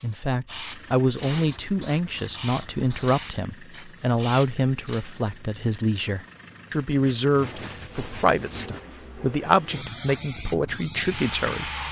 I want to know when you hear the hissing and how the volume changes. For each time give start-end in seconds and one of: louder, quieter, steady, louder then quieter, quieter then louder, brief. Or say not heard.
0.0-5.0 steady
9.7-11.8 brief.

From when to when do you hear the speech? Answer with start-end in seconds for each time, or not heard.
0.0-11.7.